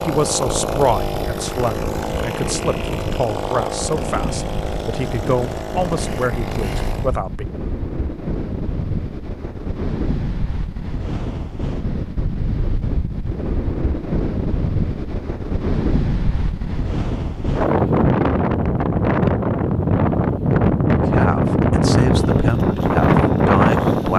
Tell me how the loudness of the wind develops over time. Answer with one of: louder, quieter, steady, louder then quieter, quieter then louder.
louder.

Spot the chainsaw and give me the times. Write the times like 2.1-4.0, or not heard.
0.0-7.2, 22.1-24.1.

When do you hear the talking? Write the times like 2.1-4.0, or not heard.
0.0-7.5, 21.1-24.1.